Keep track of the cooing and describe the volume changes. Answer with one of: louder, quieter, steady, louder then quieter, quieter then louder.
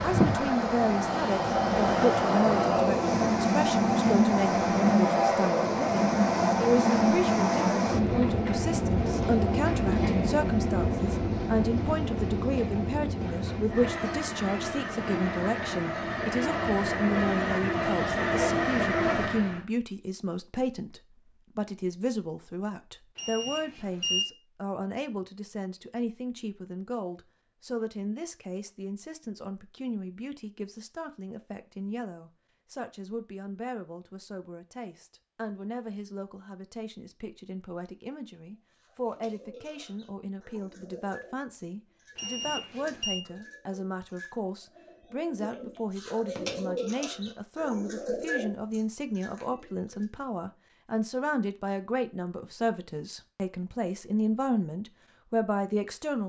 louder.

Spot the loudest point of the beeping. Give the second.
24 s.